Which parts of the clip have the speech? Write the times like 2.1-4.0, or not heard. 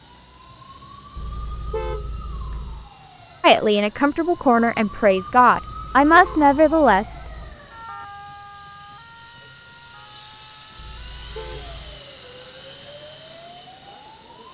3.4-7.2.